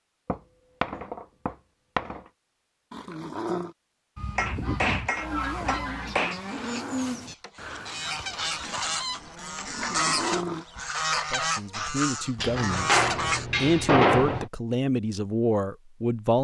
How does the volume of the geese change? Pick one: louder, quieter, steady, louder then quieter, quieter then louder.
quieter then louder.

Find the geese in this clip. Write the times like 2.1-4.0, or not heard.
4.2-13.4.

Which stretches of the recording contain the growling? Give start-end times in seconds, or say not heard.
2.9-3.8, 9.7-10.7.